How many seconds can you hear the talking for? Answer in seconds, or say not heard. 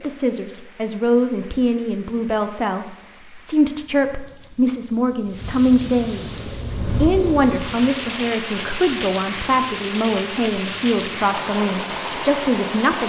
13 s.